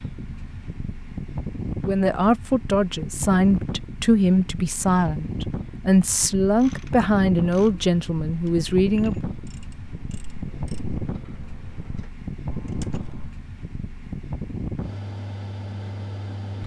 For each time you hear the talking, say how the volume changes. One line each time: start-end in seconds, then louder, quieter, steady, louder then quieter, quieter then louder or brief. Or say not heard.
1.9-9.3 steady.